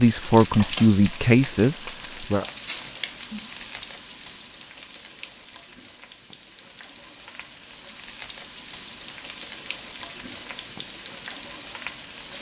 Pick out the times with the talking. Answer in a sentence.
The talking can be heard from 0.0 to 2.5 s.